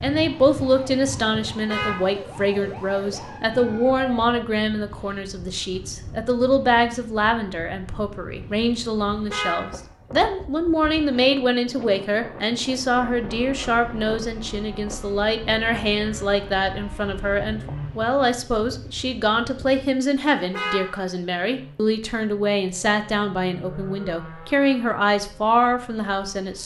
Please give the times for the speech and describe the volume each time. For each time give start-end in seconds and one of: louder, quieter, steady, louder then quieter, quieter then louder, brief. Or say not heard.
0.0-26.6 steady.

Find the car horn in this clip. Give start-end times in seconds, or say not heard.
1.5-2.0, 9.1-10.3, 20.2-21.1.